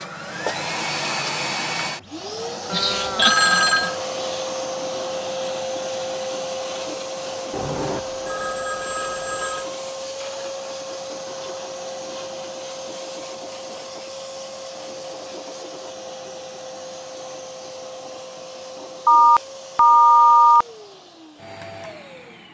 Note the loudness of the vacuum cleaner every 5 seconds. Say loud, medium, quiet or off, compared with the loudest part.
loud, loud, medium, medium, quiet.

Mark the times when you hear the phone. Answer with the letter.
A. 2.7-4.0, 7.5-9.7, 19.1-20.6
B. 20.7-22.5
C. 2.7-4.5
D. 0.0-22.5
A.